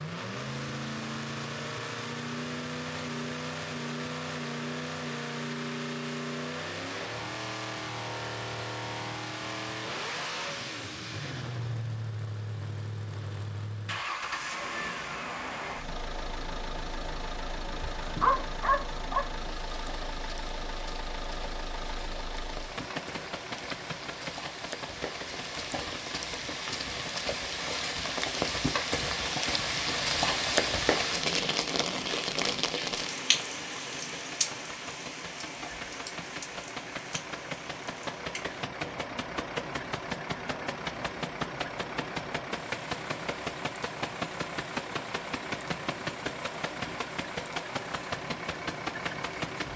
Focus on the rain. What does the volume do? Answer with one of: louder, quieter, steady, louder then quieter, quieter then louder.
louder then quieter.